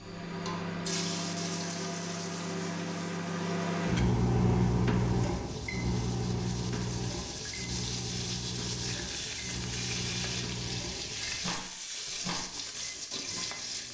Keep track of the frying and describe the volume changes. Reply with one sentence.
The loudness of the frying goes down, then up.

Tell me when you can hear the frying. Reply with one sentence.
You can hear the frying from 0.0 to 13.8 s.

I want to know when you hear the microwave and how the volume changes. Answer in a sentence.
You can hear the microwave from 0.0 to 13.8 s, getting louder then quieter.